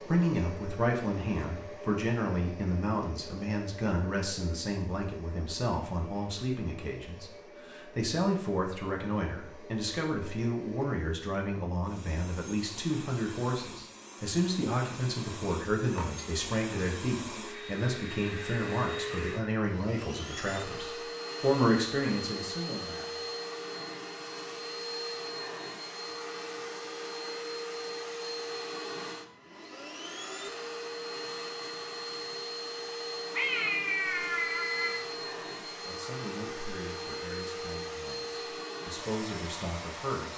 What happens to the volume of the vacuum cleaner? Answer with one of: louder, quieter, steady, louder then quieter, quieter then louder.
louder.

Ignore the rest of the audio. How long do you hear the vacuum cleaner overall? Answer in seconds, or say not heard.
40 s.